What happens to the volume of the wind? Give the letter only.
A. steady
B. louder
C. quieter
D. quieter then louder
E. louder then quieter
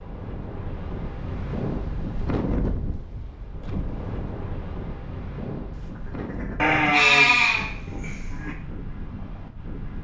C.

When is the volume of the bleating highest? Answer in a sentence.
The loudest moment of the bleating is at 7 seconds.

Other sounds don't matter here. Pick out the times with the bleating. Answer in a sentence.
You can hear the bleating from 6.5 to 8.6 s.